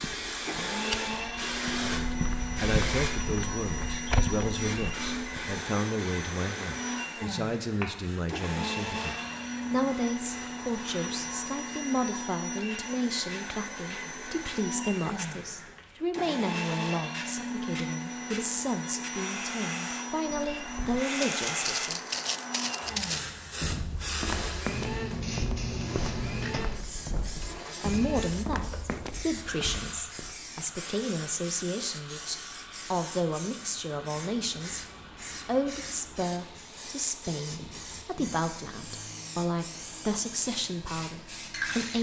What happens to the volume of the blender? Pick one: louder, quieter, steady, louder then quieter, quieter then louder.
quieter.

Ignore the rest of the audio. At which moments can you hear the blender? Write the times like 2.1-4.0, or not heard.
0.4-41.9.